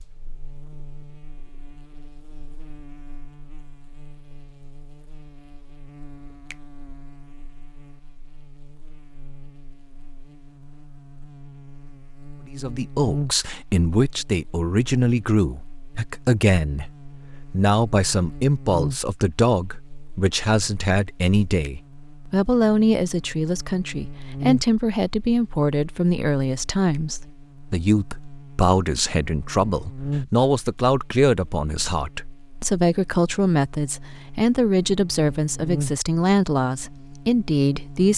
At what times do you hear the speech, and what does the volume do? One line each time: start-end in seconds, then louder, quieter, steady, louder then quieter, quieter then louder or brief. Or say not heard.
12.4-38.1 steady.